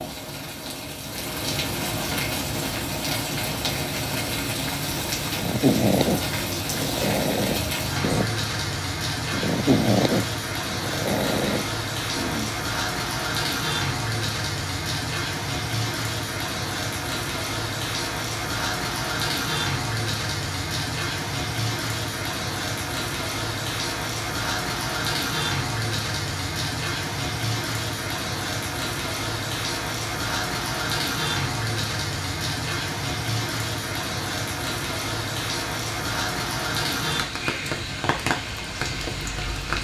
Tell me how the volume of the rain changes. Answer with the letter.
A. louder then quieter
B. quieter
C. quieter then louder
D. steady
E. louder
D.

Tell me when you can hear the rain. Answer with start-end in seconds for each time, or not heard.
0.0-39.8.